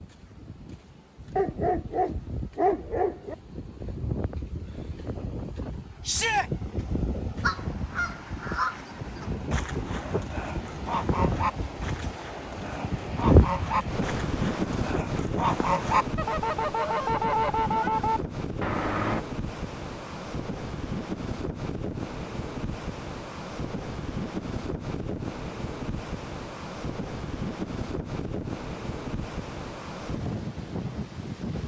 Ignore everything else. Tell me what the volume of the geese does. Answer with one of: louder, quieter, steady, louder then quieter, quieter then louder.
louder.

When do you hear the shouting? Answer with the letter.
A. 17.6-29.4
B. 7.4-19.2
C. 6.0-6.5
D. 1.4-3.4
C.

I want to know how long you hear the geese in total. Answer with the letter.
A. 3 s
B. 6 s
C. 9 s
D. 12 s
D.